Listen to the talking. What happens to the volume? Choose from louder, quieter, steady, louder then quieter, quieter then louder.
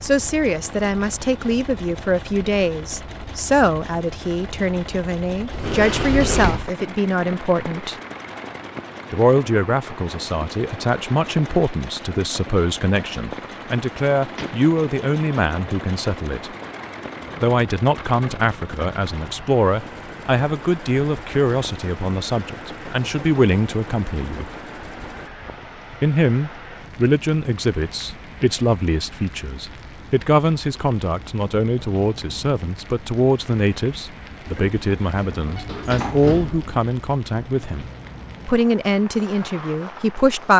steady.